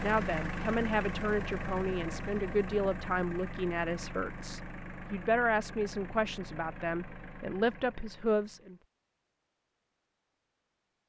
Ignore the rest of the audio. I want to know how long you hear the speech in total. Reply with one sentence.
The speech can be heard for 9 seconds in total.